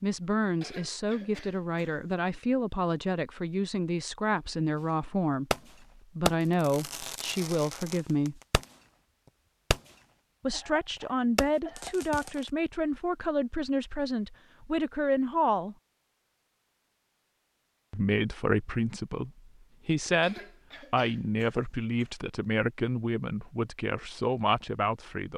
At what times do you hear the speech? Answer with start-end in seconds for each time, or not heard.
0.0-8.4, 10.4-15.8, 17.9-25.3.